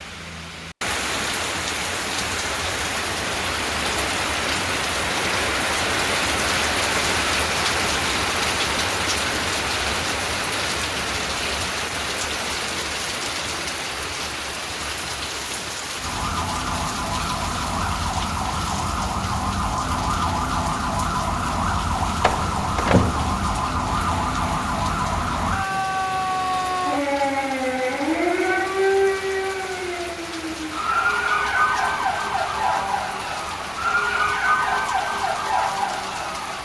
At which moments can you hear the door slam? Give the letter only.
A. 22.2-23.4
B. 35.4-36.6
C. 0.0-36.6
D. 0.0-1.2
A.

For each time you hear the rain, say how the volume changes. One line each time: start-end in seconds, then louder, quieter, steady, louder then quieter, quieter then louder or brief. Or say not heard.
0.0-36.6 quieter.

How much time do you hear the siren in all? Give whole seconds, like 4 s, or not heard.
21 s.